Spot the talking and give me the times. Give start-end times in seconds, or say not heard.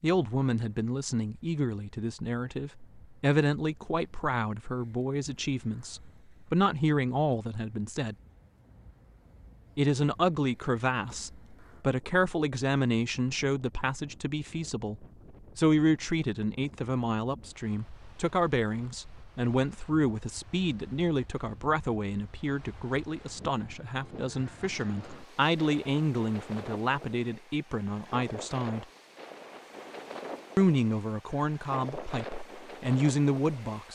0.0-8.2, 9.8-28.9, 30.6-33.9.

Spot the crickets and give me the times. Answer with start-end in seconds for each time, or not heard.
not heard.